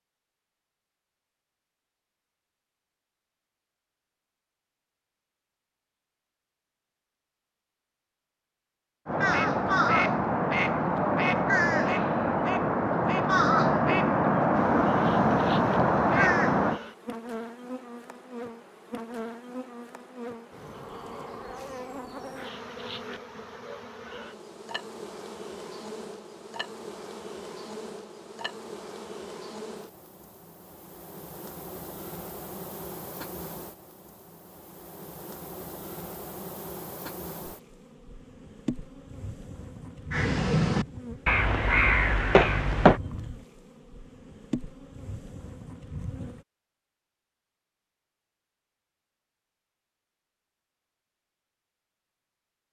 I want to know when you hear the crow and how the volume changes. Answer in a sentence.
The crow can be heard from 9.1 to 16.8 s, at a steady volume; and briefly from 40.1 to 43.0 s.